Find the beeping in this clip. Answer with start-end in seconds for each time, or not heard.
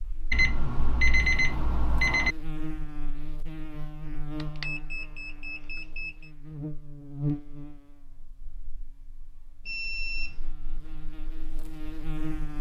0.3-2.4, 4.4-6.1, 9.7-10.4.